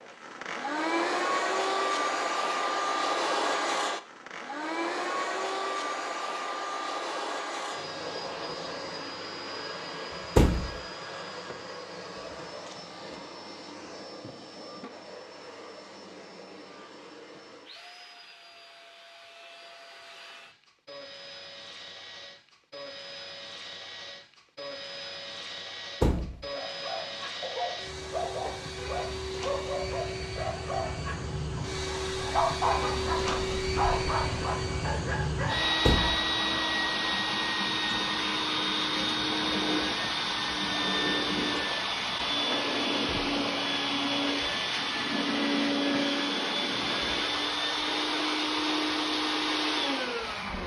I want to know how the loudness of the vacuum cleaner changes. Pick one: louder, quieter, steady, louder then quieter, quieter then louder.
quieter then louder.